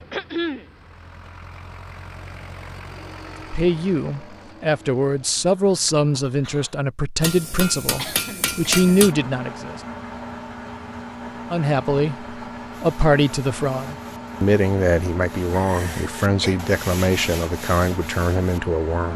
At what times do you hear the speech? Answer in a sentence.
You can hear the speech from 3.5 to 9.8 s and from 11.5 to 19.1 s.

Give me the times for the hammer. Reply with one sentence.
You can hear the hammer from 7.2 to 9.2 s.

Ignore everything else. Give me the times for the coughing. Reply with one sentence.
The coughing can be heard from 0.1 to 0.7 s, from 8.0 to 8.9 s and from 15.5 to 16.6 s.